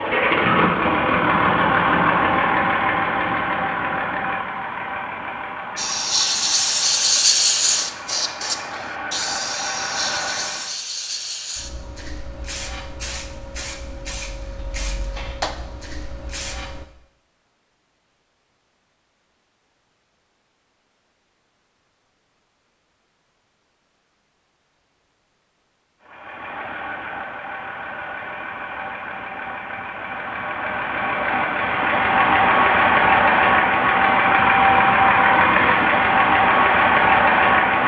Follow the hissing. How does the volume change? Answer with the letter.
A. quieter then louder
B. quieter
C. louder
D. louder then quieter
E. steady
B.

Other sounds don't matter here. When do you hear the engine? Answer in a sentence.
The engine can be heard from 0.0 to 10.8 s and from 26.0 to 37.8 s.